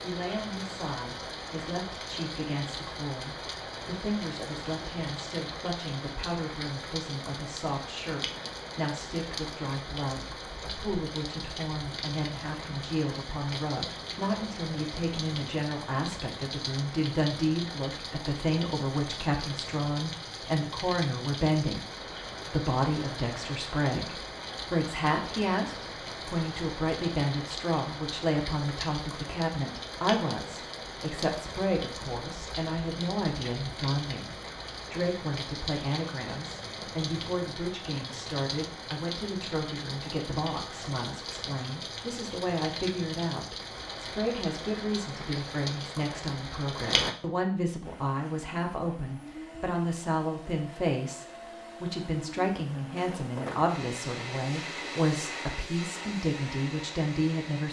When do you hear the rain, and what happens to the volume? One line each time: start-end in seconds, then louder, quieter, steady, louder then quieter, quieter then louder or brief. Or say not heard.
0.0-47.1 steady.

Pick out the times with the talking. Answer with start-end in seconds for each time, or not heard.
0.0-21.9, 22.4-57.6.